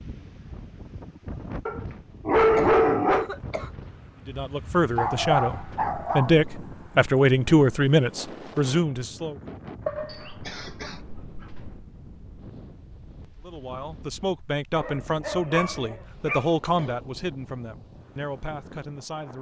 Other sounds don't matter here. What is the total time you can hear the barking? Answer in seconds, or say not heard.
7 s.